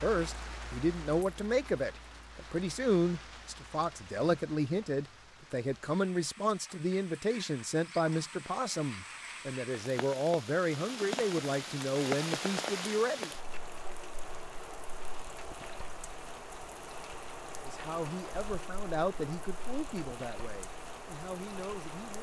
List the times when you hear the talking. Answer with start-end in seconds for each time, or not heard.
0.0-13.3, 17.6-22.1.